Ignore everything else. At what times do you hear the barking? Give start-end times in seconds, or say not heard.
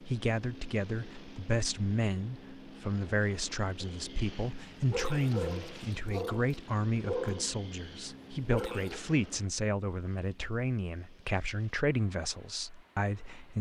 3.8-9.0.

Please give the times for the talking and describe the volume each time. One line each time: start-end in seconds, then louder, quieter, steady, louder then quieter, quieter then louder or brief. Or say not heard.
0.0-13.5 steady.